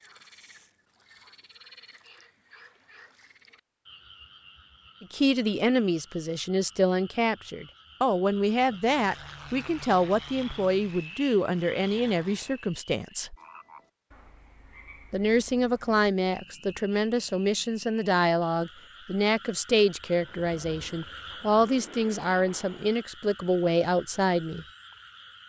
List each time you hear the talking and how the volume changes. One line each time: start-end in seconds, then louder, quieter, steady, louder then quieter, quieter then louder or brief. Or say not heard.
5.0-13.3 steady
15.1-24.6 steady.